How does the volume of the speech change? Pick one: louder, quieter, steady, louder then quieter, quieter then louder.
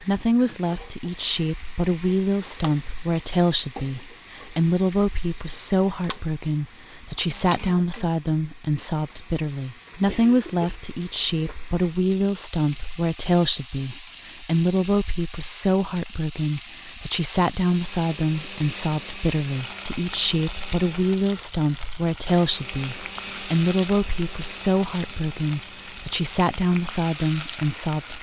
steady.